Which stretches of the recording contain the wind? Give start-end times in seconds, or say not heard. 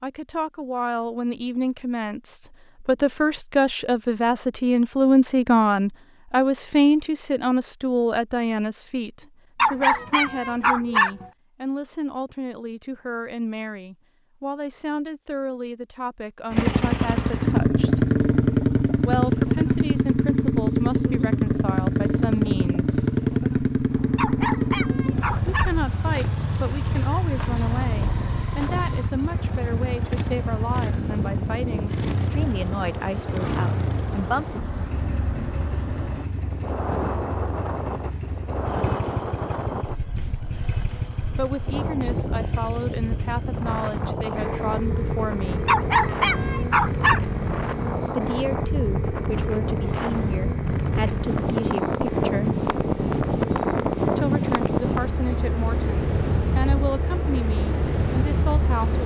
23.9-59.0.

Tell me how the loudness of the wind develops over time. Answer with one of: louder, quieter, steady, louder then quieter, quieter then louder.
louder.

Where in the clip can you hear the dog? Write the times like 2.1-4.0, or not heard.
9.6-11.3, 24.1-25.7, 45.6-47.2.